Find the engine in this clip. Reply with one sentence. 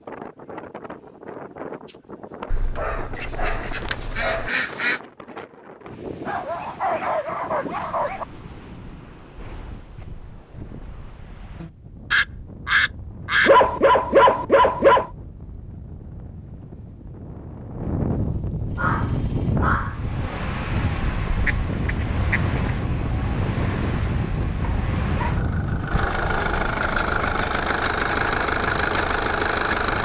You can hear the engine from 18.6 to 30.0 s.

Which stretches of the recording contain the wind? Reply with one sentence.
The wind can be heard from 0.0 to 30.0 s.